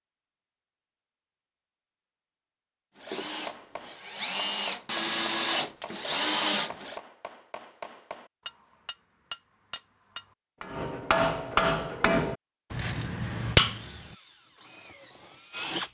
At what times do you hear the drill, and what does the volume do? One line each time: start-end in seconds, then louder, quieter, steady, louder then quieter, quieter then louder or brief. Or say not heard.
3.0-7.0 louder
13.8-15.8 brief.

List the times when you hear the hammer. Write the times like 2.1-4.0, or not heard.
3.4-14.2.